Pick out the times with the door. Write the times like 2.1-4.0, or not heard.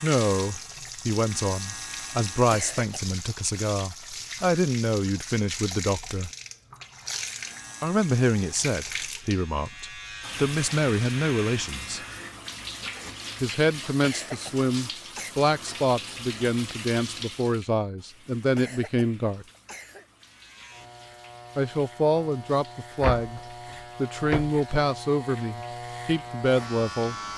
23.0-24.6.